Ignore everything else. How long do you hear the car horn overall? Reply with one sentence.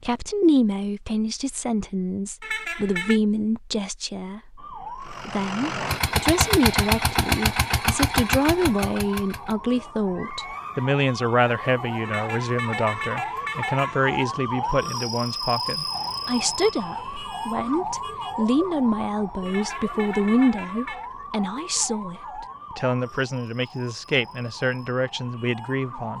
You can hear the car horn for 4 seconds altogether.